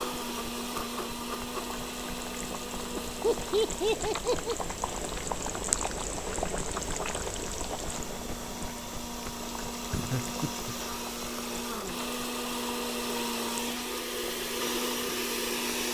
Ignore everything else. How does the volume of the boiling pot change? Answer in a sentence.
The loudness of the boiling pot goes up, then down.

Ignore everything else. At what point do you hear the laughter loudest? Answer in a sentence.
The loudest moment of the laughter is at 4 seconds.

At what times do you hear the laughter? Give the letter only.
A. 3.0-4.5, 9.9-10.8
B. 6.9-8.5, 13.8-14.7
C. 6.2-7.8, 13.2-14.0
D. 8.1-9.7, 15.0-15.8
A.